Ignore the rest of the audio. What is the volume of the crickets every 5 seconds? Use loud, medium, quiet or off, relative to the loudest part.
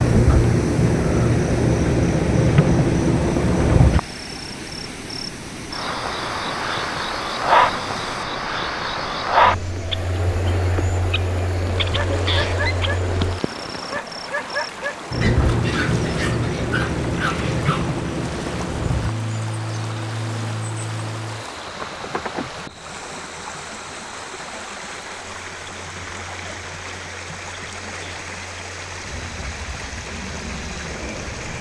loud, loud, medium, medium, quiet, quiet, quiet.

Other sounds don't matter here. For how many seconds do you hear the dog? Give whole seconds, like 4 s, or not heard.
6 s.